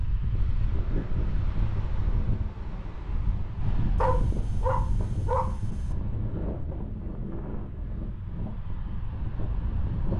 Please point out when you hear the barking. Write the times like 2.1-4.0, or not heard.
4.0-6.0.